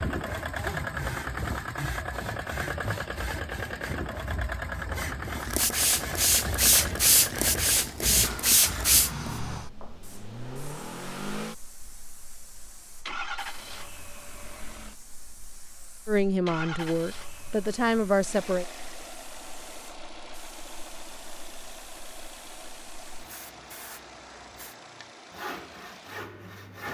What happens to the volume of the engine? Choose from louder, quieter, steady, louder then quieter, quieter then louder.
quieter.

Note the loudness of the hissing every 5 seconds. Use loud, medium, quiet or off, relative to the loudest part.
off, loud, quiet, quiet, quiet, off.